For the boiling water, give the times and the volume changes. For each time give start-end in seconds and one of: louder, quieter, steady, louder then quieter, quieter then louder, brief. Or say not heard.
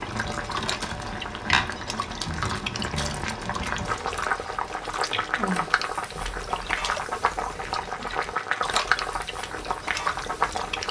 0.0-10.8 steady.